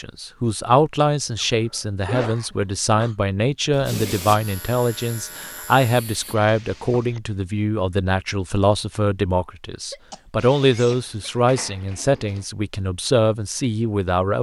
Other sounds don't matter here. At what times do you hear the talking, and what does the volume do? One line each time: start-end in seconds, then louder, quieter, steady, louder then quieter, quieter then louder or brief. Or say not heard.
0.0-14.3 steady.